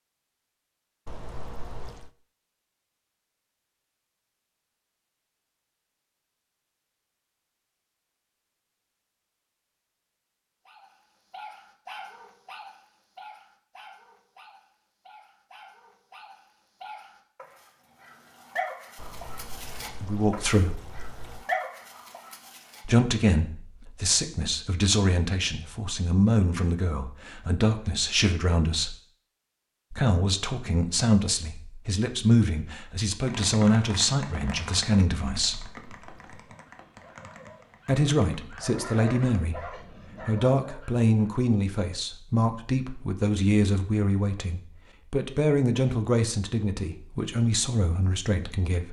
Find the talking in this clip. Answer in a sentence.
You can hear the talking from 20.0 to 20.8 s, from 22.9 to 28.9 s, from 29.9 to 35.6 s and from 37.9 to 48.8 s.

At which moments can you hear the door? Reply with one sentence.
The door can't be heard in this clip.